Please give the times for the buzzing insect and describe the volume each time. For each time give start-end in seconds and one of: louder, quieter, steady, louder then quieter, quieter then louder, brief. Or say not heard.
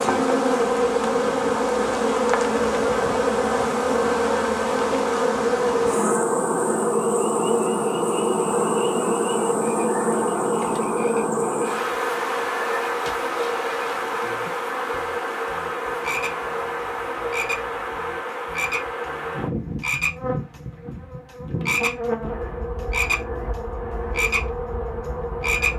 0.0-25.7 quieter.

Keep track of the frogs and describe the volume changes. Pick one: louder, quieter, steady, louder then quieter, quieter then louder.
louder.